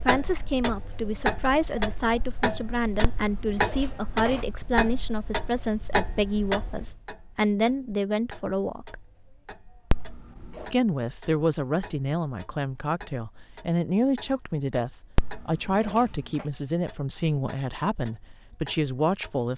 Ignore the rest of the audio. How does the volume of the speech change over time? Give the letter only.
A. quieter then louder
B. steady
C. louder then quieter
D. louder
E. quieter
B.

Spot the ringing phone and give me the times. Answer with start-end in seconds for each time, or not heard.
3.0-4.5, 9.9-10.7, 15.2-16.4.